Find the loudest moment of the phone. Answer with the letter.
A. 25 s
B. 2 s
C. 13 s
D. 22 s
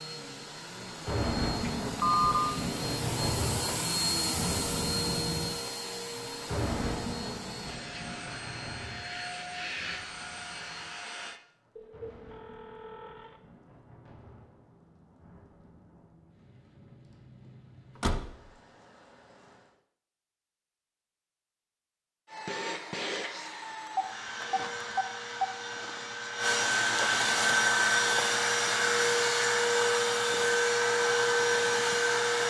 B.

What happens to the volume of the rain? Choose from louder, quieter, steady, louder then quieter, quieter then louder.
quieter.